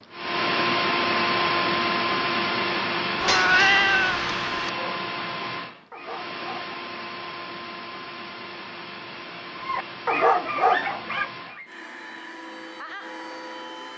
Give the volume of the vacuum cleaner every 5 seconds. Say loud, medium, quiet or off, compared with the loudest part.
loud, medium, quiet.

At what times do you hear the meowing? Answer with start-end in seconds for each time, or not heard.
3.2-4.7.